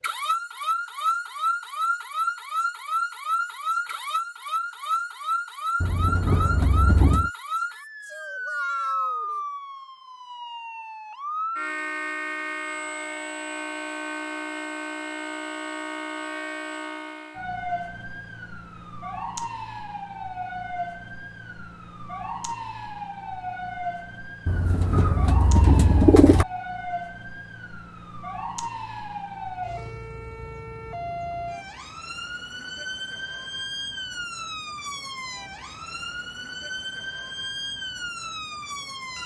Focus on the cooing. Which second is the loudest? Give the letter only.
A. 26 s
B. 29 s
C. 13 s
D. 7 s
A.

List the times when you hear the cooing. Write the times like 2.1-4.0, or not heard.
5.8-7.3, 24.4-26.4.